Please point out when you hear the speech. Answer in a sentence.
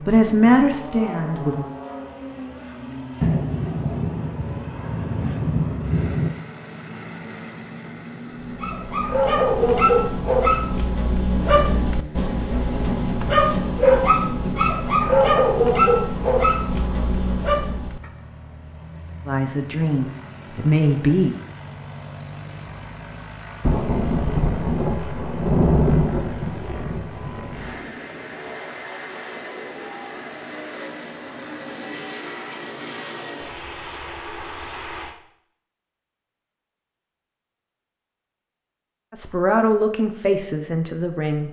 You can hear the speech from 0.0 to 1.6 s, from 19.2 to 21.4 s and from 39.1 to 41.4 s.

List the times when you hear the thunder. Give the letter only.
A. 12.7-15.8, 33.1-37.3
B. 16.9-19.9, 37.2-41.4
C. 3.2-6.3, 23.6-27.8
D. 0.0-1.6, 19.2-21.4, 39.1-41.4
C.